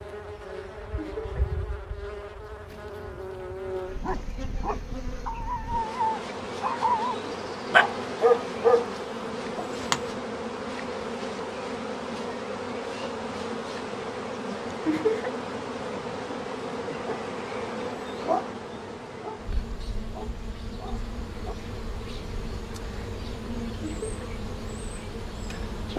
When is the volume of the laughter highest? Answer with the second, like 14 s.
15 s.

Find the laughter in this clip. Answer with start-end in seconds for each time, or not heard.
0.9-1.4, 14.8-15.3, 23.8-24.3.